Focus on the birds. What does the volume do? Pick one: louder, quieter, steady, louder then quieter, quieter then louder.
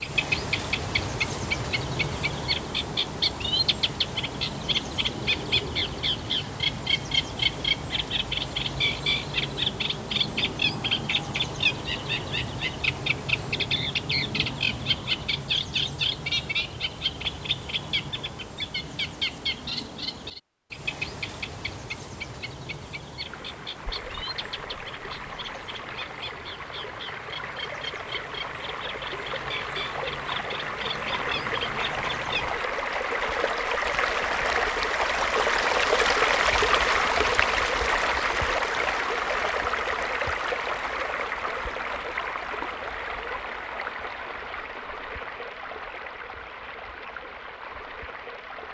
quieter.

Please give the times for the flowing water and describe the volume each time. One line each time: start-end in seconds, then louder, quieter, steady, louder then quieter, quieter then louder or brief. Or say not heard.
23.2-48.6 louder then quieter.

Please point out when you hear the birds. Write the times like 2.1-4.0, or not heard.
0.0-32.6.